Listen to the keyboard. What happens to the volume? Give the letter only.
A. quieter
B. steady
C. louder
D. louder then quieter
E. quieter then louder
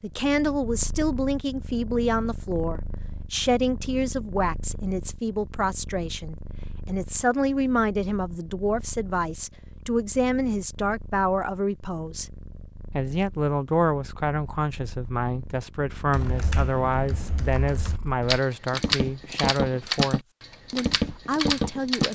C.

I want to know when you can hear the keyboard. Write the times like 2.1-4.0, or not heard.
16.1-22.0.